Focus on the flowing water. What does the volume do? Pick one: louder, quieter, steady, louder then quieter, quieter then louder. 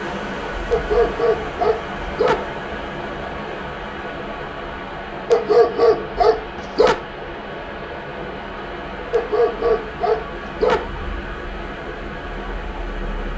steady.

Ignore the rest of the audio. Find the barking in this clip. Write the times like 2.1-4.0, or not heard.
0.7-2.5, 5.3-7.0, 9.1-10.8.